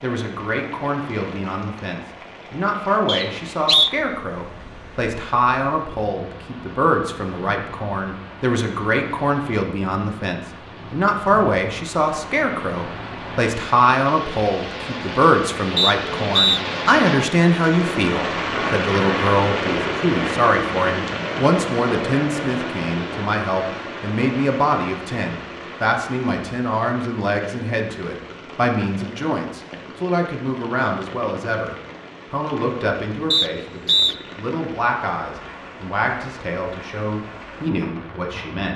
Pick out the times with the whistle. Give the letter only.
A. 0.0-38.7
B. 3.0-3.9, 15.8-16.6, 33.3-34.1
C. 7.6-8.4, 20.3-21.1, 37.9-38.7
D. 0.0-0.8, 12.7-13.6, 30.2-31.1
B.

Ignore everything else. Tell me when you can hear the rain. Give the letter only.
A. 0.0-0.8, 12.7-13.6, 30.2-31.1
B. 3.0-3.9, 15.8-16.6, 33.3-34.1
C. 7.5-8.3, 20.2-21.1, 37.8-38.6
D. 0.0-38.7
D.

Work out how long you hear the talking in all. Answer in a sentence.
You can hear the talking for 39 seconds altogether.